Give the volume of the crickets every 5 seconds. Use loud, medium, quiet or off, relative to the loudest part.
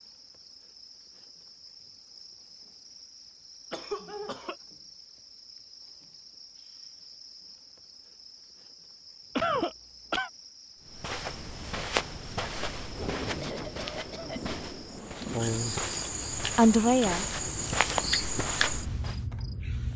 quiet, quiet, quiet, loud.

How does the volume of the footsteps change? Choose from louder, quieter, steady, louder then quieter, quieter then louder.
quieter then louder.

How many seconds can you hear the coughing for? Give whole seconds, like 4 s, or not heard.
3 s.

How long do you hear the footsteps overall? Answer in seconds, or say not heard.
8 s.